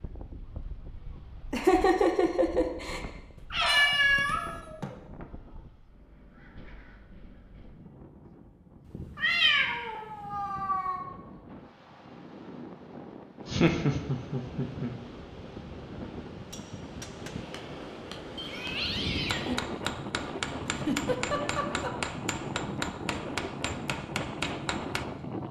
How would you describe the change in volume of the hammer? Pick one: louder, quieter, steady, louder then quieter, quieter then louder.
louder.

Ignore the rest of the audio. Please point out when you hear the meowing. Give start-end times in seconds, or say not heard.
3.4-4.9, 8.8-11.1, 18.4-19.6.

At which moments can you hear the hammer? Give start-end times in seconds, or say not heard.
16.5-25.1.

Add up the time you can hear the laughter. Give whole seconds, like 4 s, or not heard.
4 s.